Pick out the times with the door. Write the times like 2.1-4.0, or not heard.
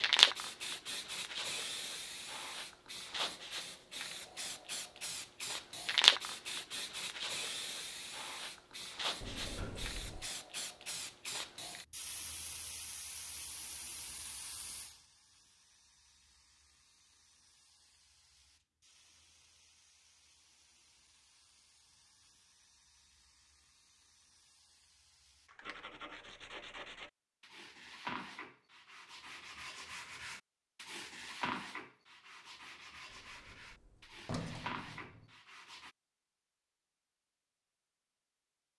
9.2-10.3, 33.1-35.3.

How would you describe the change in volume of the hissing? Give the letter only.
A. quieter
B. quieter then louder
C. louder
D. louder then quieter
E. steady
D.